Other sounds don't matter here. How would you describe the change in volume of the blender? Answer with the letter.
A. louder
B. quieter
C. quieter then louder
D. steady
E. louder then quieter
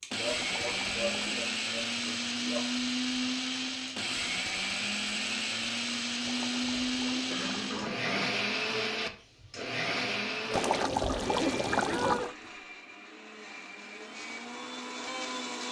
B.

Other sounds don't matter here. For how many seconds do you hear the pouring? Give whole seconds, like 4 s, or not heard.
5 s.